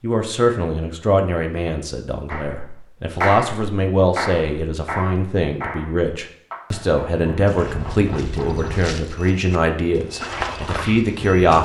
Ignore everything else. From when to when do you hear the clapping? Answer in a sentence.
The clapping can be heard from 2.3 to 8.8 s.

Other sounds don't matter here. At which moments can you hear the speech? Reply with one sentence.
The speech can be heard from 0.0 to 11.5 s.